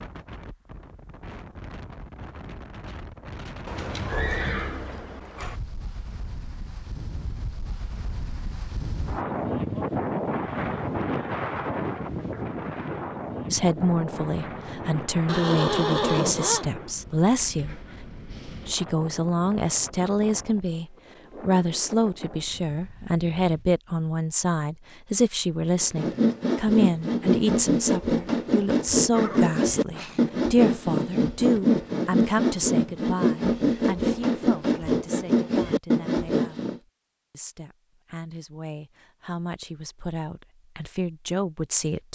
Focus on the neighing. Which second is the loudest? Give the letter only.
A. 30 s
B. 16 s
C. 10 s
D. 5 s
B.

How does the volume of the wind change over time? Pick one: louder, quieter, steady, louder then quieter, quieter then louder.
louder then quieter.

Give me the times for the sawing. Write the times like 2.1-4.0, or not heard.
25.8-36.8.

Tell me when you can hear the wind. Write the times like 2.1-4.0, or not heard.
0.0-23.6.